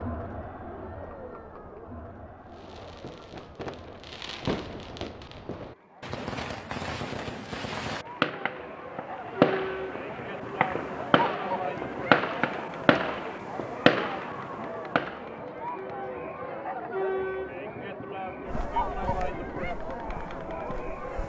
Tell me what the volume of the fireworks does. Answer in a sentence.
The loudness of the fireworks goes up.